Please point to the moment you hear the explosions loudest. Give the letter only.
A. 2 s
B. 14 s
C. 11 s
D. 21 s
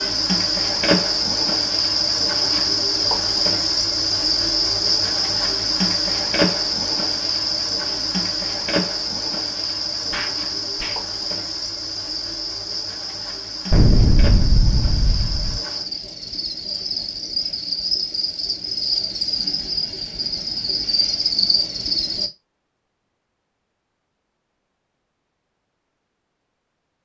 B.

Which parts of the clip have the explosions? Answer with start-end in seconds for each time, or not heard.
10.1-11.0, 13.7-15.6.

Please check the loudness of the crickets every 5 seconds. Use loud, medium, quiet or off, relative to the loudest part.
loud, loud, medium, medium, loud, off.